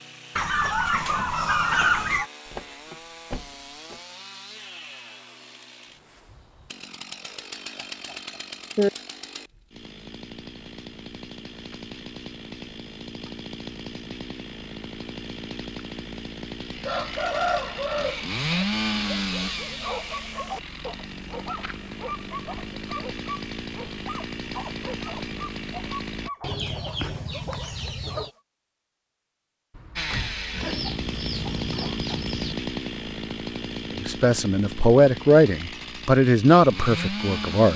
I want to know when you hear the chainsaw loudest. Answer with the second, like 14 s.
19 s.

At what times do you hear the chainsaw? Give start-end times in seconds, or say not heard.
0.0-26.3, 29.9-37.7.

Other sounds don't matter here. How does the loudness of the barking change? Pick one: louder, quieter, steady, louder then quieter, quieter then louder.
quieter.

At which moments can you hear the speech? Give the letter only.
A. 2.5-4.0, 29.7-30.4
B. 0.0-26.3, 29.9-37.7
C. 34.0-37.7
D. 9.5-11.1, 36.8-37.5
C.